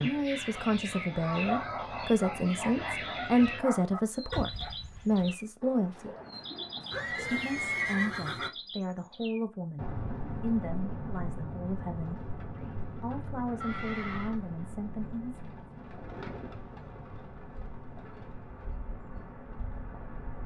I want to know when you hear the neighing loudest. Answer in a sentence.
The loudest moment of the neighing is at 8 seconds.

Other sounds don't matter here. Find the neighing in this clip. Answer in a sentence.
The neighing can be heard from 6.9 to 8.5 s and from 13.6 to 14.3 s.